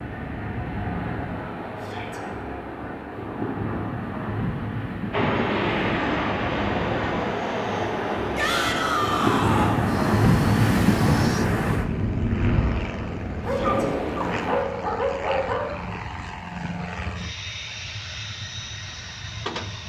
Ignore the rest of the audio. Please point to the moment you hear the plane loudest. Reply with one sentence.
The loudest moment of the plane is at 6 seconds.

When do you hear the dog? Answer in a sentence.
The dog can be heard from 13.4 to 16.0 s.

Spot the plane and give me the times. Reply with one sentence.
The plane can be heard from 5.1 to 19.8 s.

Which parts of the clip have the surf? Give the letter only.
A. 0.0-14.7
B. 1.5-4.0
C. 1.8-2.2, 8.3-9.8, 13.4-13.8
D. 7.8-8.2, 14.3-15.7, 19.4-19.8
A.